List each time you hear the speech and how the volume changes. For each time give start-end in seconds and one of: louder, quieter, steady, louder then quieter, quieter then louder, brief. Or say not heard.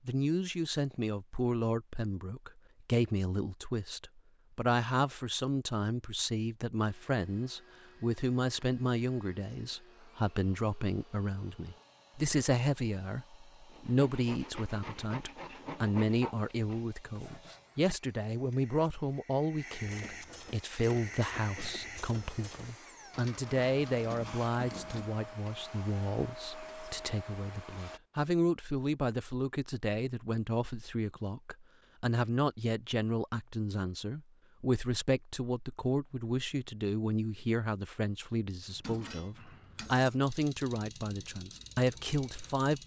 0.1-42.8 steady.